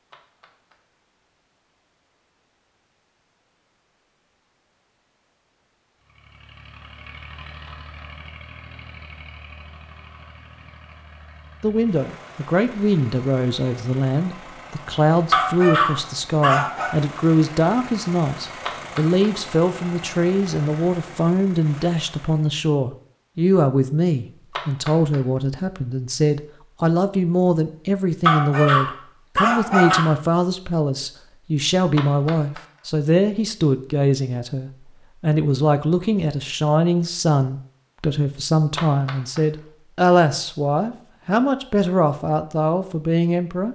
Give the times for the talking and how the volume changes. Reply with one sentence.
The talking can be heard from 11.6 to 43.7 s, at a steady volume.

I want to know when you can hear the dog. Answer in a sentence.
You can hear the dog from 15.3 to 16.9 s and from 28.2 to 30.1 s.